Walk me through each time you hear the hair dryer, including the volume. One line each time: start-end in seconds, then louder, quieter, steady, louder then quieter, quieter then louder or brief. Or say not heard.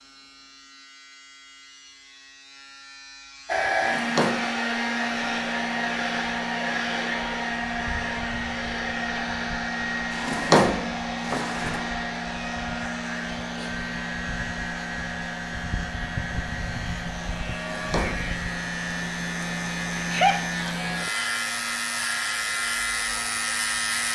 3.5-24.1 quieter.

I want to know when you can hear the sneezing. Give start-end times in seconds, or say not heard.
19.9-20.4.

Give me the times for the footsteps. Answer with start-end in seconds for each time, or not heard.
not heard.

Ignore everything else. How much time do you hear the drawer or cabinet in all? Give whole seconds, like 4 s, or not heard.
3 s.